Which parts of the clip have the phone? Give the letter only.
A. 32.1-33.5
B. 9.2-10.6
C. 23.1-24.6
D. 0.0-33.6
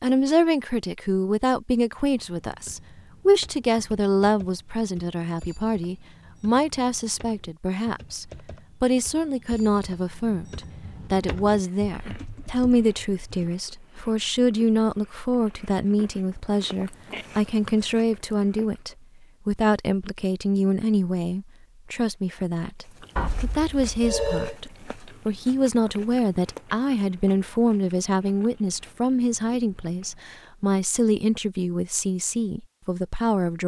C.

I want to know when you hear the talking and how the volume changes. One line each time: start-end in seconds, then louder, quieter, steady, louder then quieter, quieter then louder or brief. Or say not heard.
0.0-33.6 steady.